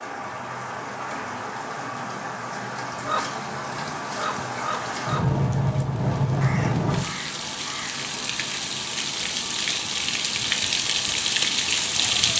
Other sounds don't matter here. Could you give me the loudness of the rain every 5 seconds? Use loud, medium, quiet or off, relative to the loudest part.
medium, loud, loud.